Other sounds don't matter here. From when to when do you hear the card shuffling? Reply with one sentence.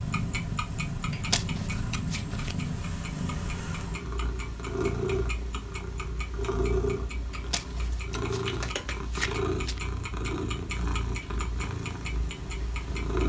The card shuffling can be heard from 1.1 to 2.5 s and from 7.3 to 9.8 s.